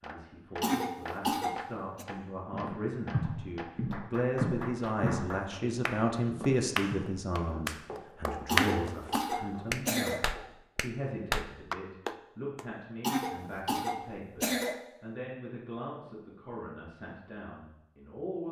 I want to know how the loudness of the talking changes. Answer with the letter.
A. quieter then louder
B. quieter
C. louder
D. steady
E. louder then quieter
E.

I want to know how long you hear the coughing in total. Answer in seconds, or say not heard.
5 s.